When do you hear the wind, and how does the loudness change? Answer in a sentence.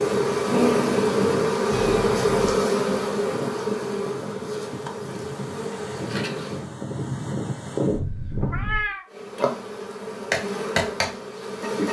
You can hear the wind from 0.0 to 8.8 s, getting quieter then louder.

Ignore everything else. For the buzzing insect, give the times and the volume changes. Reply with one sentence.
You can hear the buzzing insect from 0.0 to 6.7 s, getting quieter; and briefly from 9.1 to 11.8 s.